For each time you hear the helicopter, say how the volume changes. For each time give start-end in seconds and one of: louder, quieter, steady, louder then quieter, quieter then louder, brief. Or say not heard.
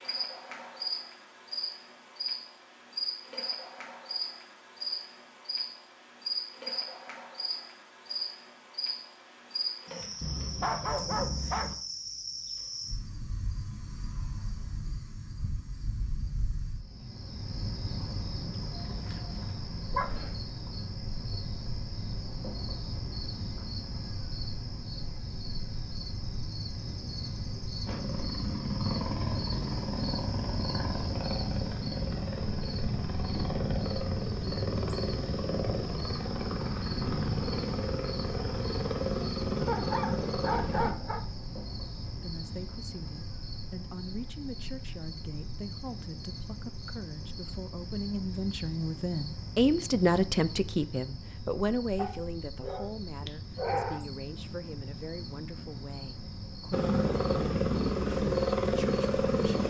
27.9-41.0 steady
56.7-59.6 brief.